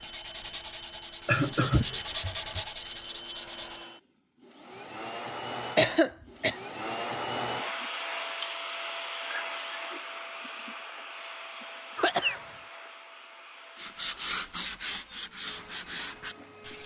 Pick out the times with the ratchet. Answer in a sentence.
You can't hear the ratchet here.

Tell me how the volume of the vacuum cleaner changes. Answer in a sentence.
The volume of the vacuum cleaner goes up, then down.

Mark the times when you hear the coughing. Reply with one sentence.
You can hear the coughing from 1.2 to 2.6 s, from 5.8 to 6.5 s and from 11.9 to 12.4 s.